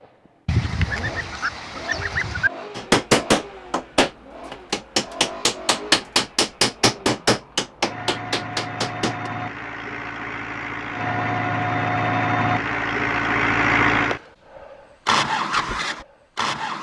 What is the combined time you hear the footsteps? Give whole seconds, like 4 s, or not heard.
not heard.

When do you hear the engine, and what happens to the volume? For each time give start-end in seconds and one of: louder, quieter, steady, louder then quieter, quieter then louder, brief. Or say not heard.
0.0-16.7 louder.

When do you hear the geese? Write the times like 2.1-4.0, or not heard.
0.5-2.5.